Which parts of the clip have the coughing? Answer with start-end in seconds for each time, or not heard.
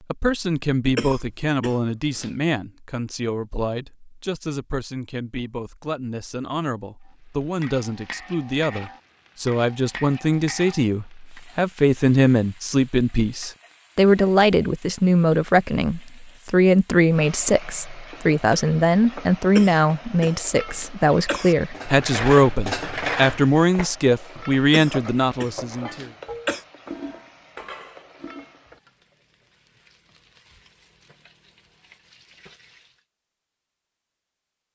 0.9-2.3, 19.6-21.6, 24.7-26.6.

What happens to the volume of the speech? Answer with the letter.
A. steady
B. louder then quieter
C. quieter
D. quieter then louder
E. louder
E.